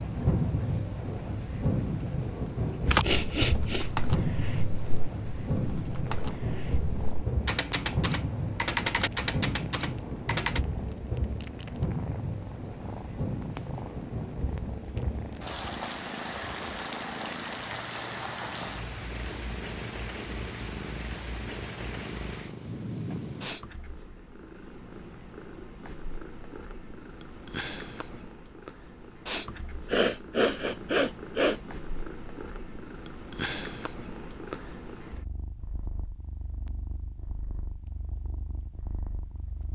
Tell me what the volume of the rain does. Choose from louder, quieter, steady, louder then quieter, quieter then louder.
quieter.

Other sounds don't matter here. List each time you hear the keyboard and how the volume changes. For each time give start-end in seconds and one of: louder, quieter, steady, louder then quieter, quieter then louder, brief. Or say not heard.
2.9-10.6 quieter then louder.